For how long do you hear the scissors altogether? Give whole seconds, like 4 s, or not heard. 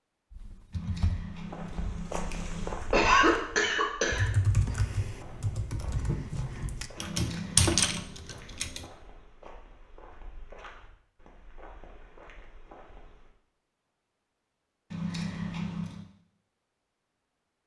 4 s.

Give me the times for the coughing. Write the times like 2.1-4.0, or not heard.
2.9-4.2.